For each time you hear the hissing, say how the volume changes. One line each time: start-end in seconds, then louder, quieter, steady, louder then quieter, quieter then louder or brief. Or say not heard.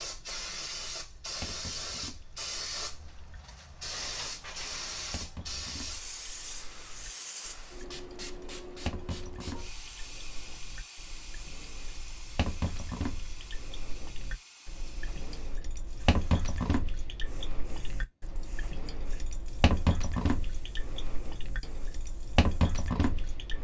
0.0-23.5 quieter.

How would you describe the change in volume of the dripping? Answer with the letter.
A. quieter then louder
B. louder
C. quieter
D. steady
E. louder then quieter
B.